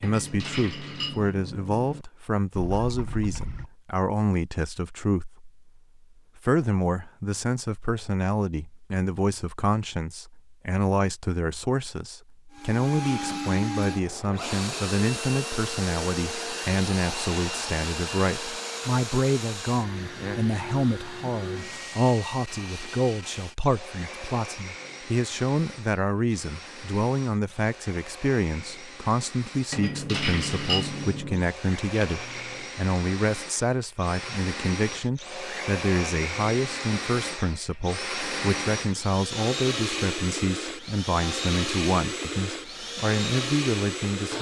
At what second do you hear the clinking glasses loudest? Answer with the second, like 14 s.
31 s.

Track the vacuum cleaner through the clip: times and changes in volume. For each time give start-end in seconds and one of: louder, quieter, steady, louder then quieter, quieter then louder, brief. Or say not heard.
12.5-44.3 quieter then louder.